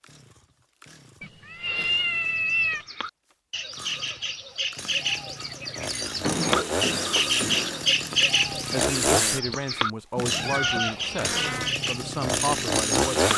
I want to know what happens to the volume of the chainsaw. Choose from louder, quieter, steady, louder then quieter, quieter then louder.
louder.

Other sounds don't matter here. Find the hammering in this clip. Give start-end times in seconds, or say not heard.
6.2-7.9.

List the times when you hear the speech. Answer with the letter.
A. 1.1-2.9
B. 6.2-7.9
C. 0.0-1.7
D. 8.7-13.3
D.